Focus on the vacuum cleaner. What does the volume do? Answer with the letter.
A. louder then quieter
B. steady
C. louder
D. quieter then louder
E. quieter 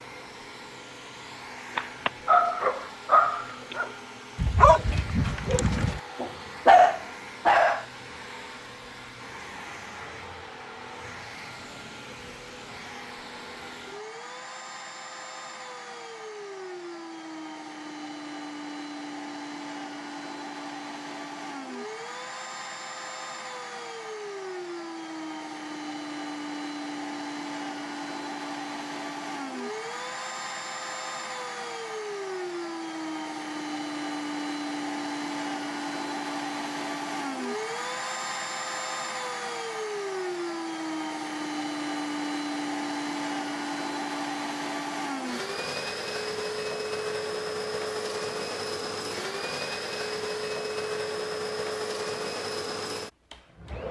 C.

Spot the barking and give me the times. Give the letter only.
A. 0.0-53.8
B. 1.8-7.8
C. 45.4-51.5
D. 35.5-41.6
B.